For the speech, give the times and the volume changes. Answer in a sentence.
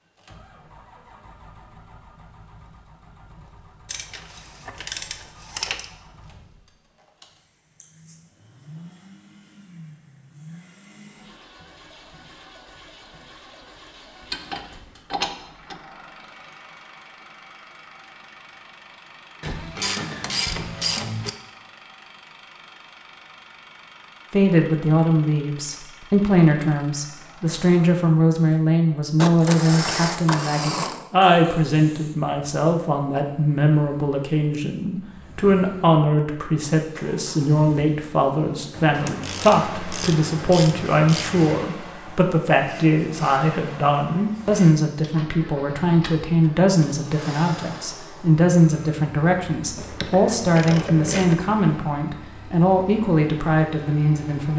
You can hear the speech from 24.3 to 54.5 s, at a steady volume.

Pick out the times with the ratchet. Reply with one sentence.
The ratchet can be heard from 3.9 to 5.8 s, from 14.2 to 15.8 s, from 19.4 to 21.3 s, from 29.1 to 31.1 s, from 38.9 to 41.6 s and from 49.8 to 51.4 s.